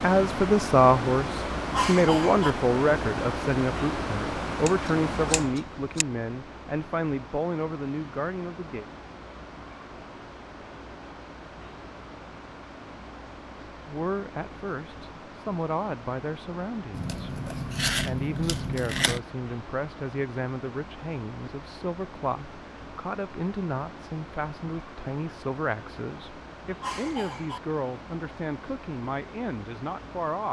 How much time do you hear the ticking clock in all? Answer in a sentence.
The ticking clock can't be heard in this clip.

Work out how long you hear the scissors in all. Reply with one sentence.
The scissors can be heard for 4 seconds in total.